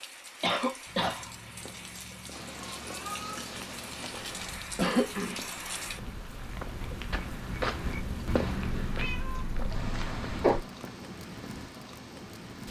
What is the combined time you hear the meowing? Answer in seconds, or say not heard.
4 s.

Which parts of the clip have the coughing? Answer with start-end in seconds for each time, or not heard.
0.4-1.3, 4.8-5.3, 9.5-10.6.